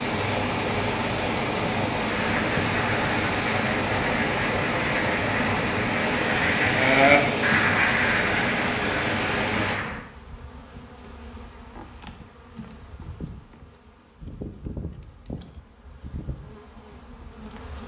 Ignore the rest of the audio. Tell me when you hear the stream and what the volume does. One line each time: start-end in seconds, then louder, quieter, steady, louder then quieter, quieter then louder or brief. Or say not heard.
0.0-9.8 steady.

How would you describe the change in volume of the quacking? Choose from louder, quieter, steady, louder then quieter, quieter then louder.
louder then quieter.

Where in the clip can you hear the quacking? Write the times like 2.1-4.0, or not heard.
2.1-10.0.